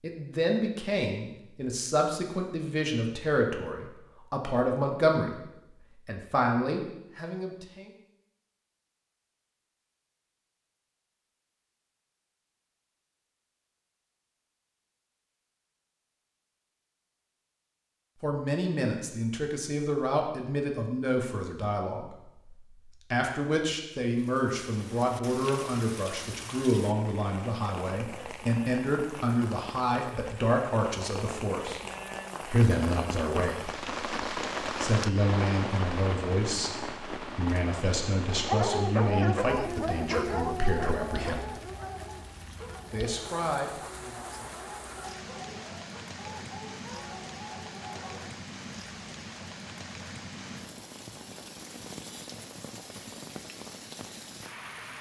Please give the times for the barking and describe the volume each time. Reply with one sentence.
The barking can be heard from 38.3 to 48.3 s, getting quieter.